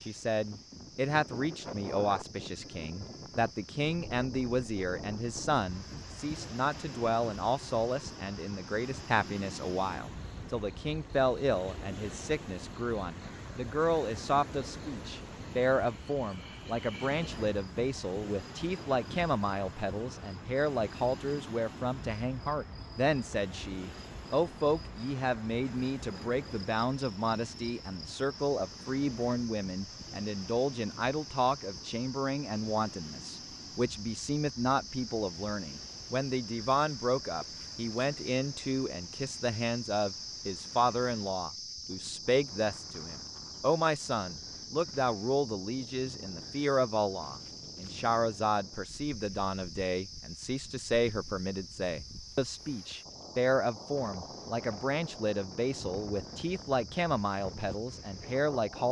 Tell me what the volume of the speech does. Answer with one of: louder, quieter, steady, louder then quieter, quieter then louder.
steady.